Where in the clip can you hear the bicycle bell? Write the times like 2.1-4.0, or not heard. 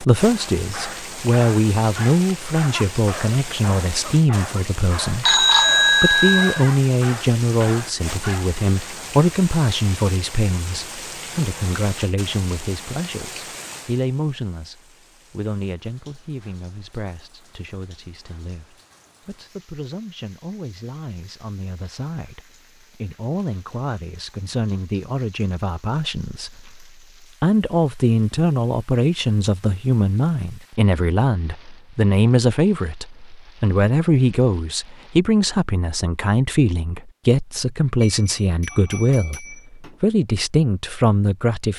5.2-6.7, 38.0-40.0.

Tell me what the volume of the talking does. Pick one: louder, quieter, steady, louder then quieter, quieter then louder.
quieter then louder.